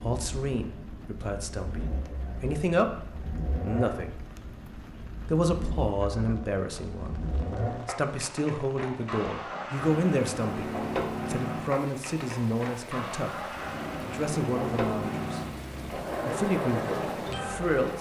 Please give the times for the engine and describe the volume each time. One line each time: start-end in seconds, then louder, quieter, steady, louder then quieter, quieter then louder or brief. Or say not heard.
0.0-17.9 louder.